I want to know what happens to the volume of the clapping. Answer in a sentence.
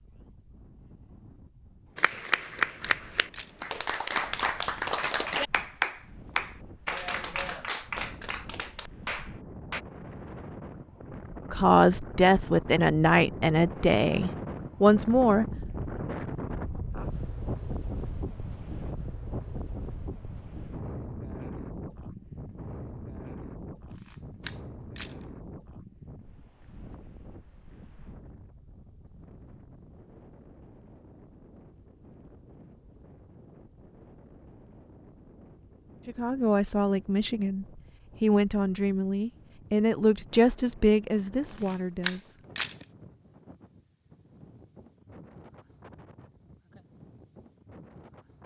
The volume of the clapping goes down.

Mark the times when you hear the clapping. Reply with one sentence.
You can hear the clapping from 1.9 to 9.8 s.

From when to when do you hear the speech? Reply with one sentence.
The speech can be heard from 11.5 to 15.4 s and from 36.0 to 42.4 s.